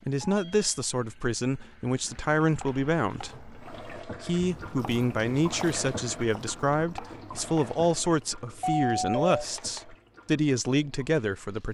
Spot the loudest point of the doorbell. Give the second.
9 s.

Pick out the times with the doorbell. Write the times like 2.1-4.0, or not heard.
0.2-0.7, 8.6-9.4.